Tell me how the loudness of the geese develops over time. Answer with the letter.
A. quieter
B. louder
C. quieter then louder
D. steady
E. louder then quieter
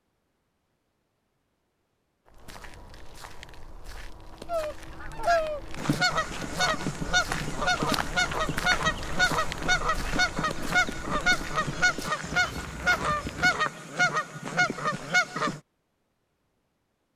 D.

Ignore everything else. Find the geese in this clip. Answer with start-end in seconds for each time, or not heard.
4.5-15.6.